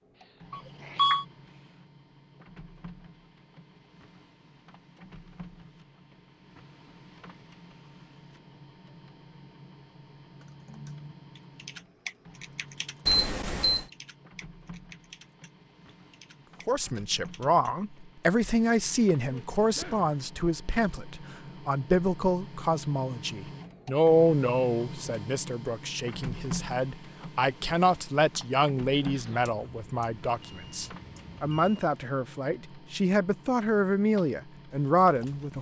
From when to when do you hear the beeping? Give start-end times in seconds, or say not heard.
0.5-1.2, 13.1-13.8, 29.4-31.9.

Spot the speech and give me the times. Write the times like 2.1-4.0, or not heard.
16.6-35.5.